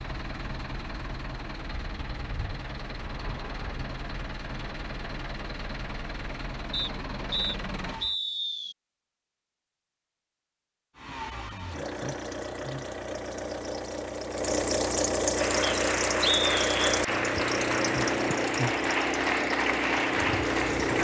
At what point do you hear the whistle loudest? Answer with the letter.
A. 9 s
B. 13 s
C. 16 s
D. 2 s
C.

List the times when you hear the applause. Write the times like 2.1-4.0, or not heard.
15.3-20.9.